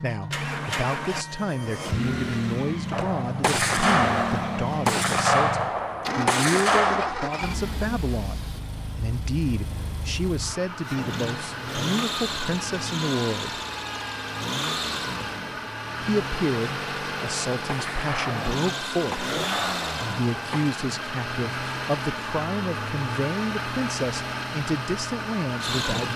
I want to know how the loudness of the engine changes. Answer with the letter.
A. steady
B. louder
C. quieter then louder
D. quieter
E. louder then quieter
A.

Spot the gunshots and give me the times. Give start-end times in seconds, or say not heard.
2.9-7.2, 17.1-20.7.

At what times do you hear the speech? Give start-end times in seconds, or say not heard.
0.0-13.6, 16.0-19.3, 20.0-26.1.